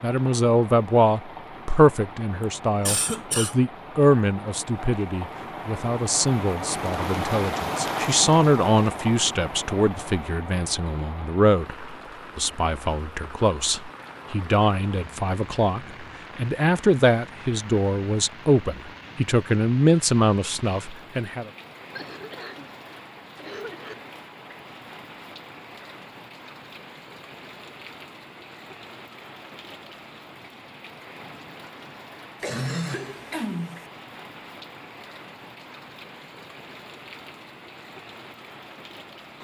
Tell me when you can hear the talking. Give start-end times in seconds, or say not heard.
0.0-21.5.